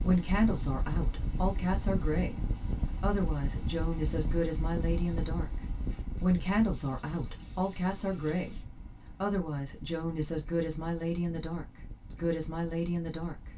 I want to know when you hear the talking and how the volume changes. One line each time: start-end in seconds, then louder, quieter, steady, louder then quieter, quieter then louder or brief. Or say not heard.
0.0-13.3 steady.